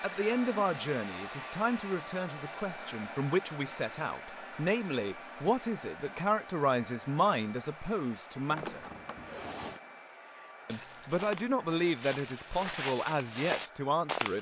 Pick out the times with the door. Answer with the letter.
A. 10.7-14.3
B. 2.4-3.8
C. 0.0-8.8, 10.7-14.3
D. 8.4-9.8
D.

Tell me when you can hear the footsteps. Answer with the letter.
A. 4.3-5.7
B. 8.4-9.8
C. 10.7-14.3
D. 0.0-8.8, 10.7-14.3
C.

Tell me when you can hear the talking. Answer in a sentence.
You can hear the talking from 0.0 to 8.8 s and from 10.7 to 14.3 s.